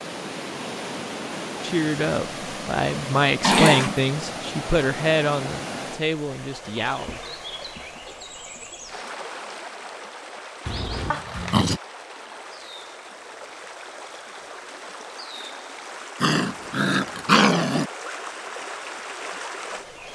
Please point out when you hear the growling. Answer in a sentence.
The growling can be heard from 3.4 to 4.0 s, from 10.7 to 11.8 s and from 16.2 to 17.9 s.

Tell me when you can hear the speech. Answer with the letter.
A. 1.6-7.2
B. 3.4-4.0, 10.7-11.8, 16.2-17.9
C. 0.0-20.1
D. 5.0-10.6
A.